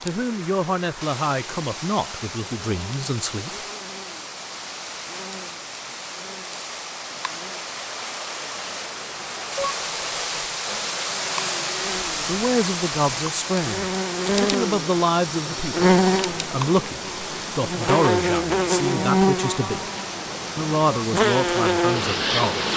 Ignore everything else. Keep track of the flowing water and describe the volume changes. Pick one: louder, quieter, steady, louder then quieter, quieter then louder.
louder then quieter.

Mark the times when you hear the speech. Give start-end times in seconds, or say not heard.
0.0-3.5, 12.2-19.9, 20.6-22.6.